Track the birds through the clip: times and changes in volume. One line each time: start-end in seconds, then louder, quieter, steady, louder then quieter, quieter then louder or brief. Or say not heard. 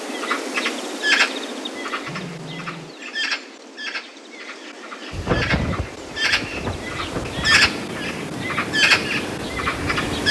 0.0-10.2 quieter then louder.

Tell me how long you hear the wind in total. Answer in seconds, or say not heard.
5 s.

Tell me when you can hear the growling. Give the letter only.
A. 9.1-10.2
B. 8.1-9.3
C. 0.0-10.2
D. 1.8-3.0
D.